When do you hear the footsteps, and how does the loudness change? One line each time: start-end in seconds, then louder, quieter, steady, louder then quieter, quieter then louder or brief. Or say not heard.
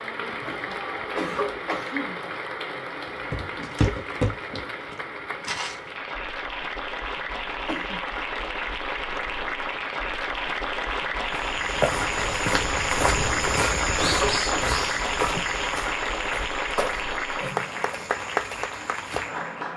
3.3-5.8 brief
11.3-19.6 quieter.